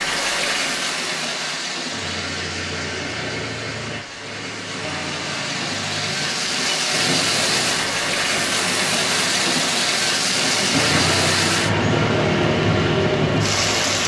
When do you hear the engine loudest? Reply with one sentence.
The loudest moment of the engine is at 11 seconds.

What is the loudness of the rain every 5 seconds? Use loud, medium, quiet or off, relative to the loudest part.
medium, loud, loud.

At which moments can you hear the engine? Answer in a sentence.
You can hear the engine from 1.9 to 14.0 s.